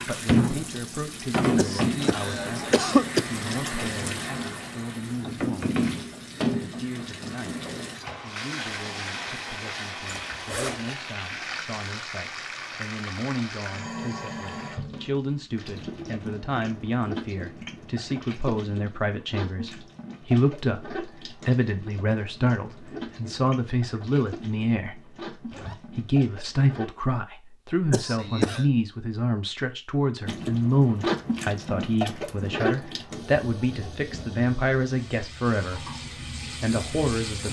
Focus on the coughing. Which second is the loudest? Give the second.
3 s.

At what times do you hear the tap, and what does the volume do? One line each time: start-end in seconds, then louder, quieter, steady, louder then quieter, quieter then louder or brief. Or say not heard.
0.0-26.9 quieter
30.2-37.4 quieter then louder.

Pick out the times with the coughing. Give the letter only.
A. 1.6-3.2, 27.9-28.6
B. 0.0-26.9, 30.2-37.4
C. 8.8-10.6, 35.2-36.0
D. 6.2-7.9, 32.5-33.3
A.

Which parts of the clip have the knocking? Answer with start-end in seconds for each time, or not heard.
not heard.